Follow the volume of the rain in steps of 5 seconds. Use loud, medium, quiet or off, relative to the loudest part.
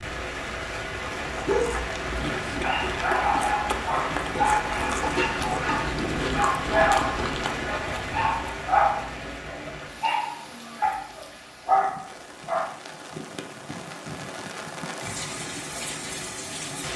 loud, loud, medium, loud.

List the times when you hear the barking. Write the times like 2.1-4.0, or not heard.
1.4-12.7.